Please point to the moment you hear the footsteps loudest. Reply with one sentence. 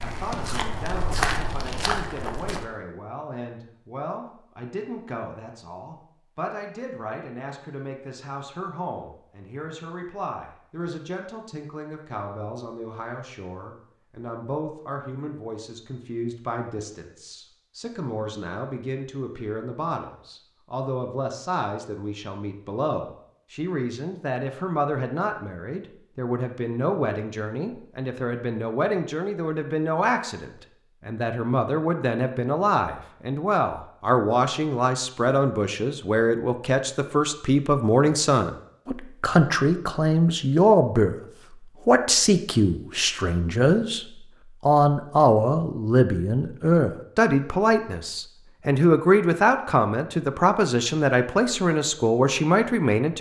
The loudest moment of the footsteps is at 1 second.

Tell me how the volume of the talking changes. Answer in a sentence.
The loudness of the talking goes up.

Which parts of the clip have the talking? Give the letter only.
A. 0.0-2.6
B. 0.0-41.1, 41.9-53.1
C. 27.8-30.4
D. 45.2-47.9
B.